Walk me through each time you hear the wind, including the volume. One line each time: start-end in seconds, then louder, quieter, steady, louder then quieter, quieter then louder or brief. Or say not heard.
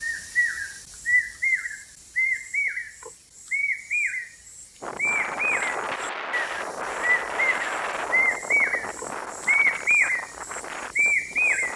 4.8-11.7 quieter.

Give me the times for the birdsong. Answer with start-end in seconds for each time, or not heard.
0.0-11.7.